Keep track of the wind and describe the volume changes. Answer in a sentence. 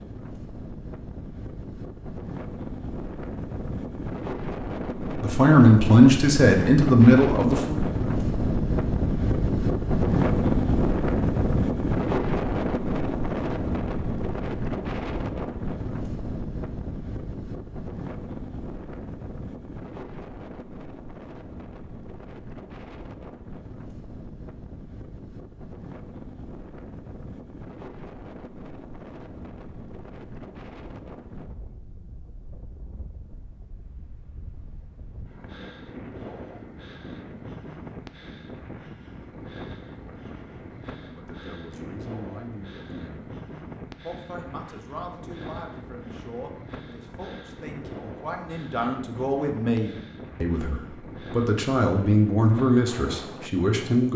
The volume of the wind goes down.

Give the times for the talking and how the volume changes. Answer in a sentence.
The talking can be heard briefly from 5.2 to 7.8 s; briefly from 41.0 to 43.2 s; and from 44.0 to 54.1 s, getting louder.